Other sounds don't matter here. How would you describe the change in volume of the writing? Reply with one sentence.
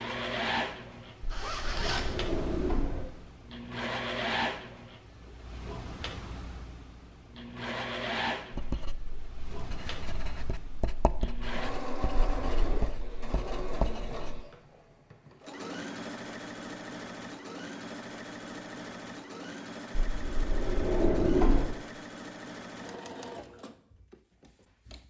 The volume of the writing goes up.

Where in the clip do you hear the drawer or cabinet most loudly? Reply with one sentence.
The loudest moment of the drawer or cabinet is at 21 seconds.